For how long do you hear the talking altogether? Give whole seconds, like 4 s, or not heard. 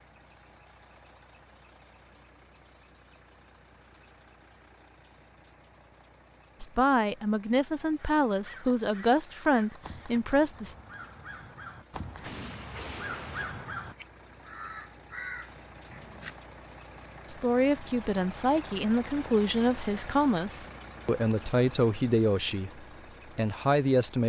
11 s.